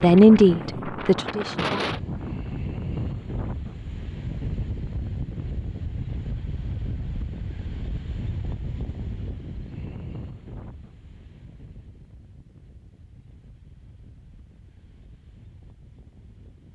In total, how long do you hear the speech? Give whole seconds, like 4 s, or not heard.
2 s.